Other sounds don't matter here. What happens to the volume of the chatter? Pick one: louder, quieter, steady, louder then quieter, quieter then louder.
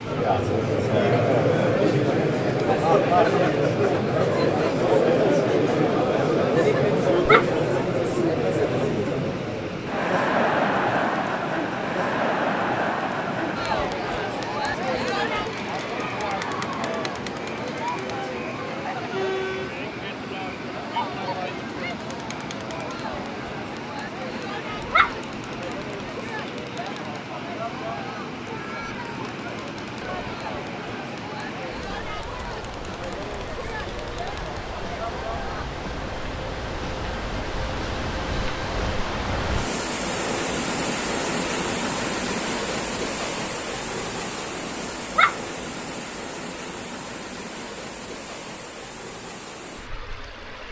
quieter.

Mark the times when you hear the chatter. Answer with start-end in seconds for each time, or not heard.
0.0-35.6.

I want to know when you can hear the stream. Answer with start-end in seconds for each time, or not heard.
0.0-50.6.